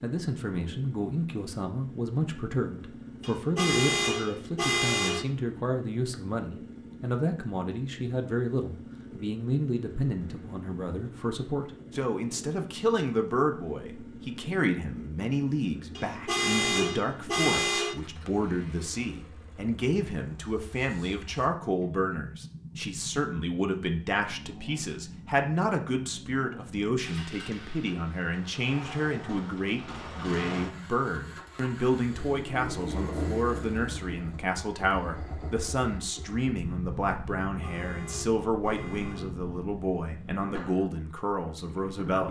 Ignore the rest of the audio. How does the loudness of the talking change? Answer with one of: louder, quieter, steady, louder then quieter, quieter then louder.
steady.